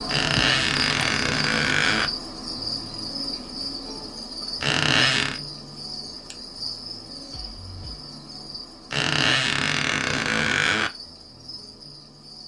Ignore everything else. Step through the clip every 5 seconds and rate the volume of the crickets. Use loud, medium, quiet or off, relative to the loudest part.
loud, medium, quiet.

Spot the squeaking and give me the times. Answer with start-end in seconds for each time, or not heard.
0.1-2.1, 4.6-5.4, 8.9-10.9.